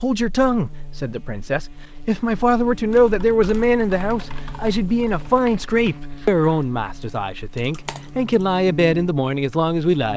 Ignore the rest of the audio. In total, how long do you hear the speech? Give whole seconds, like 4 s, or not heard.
10 s.